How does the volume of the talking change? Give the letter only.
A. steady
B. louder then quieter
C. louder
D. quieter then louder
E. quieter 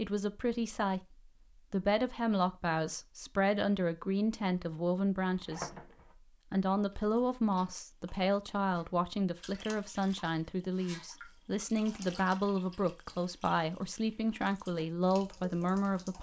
A.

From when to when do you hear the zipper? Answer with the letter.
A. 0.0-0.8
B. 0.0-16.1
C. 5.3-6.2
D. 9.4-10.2
C.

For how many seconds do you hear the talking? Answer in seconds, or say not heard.
16 s.